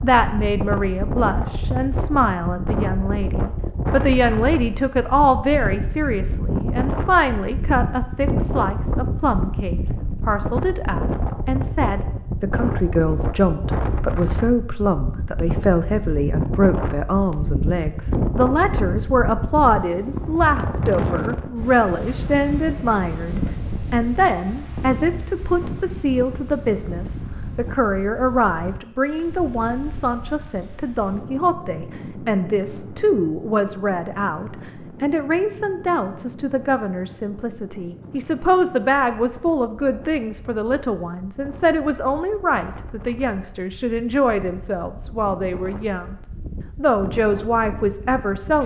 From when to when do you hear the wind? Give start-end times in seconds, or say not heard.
0.0-48.6.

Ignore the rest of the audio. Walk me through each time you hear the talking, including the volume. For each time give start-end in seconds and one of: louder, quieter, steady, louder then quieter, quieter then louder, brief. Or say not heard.
0.0-46.1 steady
46.8-48.6 brief.